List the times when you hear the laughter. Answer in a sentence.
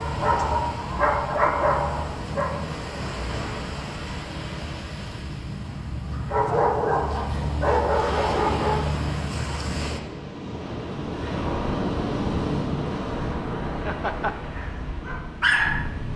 The laughter can be heard from 13.7 to 14.3 s.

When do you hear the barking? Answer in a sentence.
You can hear the barking from 0.0 to 2.5 s, from 6.3 to 8.8 s and from 14.6 to 15.9 s.